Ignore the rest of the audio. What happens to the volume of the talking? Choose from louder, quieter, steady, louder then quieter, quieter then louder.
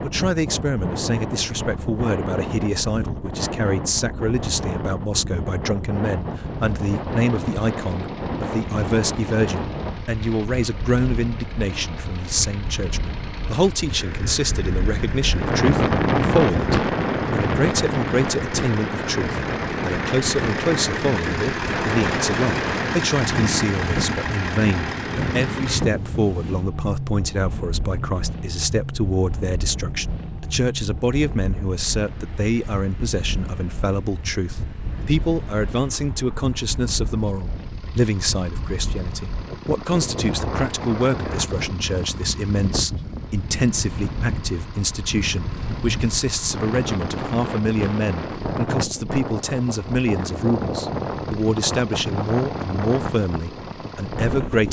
steady.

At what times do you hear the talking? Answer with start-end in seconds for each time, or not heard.
0.0-54.6.